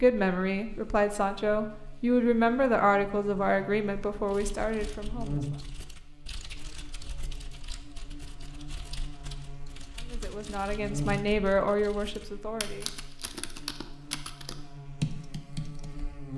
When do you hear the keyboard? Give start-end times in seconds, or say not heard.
4.2-16.1.